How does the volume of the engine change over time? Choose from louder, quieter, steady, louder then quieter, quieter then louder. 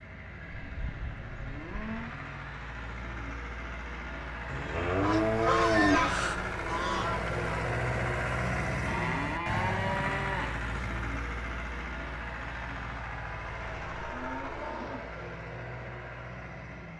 louder then quieter.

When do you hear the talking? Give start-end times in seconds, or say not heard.
not heard.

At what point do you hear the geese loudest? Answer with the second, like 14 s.
6 s.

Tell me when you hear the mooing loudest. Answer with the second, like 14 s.
6 s.